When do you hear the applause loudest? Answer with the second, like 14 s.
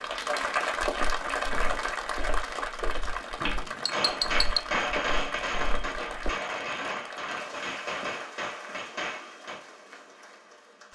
1 s.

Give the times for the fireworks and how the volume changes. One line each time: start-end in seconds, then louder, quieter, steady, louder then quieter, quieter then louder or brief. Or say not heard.
3.9-9.6 quieter.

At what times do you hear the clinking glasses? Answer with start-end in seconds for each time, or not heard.
3.4-4.6.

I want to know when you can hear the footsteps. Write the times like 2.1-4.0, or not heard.
0.8-6.3.